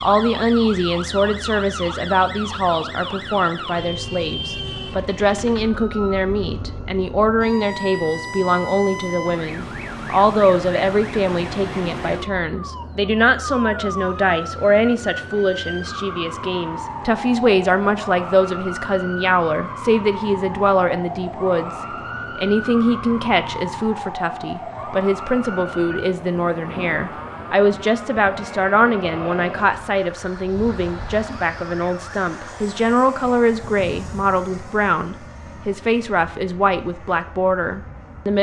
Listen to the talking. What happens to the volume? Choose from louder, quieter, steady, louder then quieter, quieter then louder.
steady.